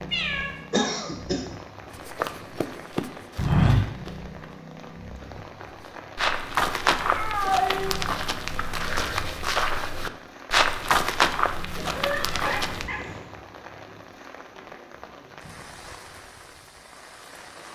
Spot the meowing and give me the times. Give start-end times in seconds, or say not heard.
0.1-0.6, 6.3-8.0, 11.8-13.3.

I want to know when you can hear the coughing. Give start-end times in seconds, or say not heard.
0.7-1.4.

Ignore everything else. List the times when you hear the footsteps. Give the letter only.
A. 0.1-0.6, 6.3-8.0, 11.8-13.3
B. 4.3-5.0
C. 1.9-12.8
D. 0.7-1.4
C.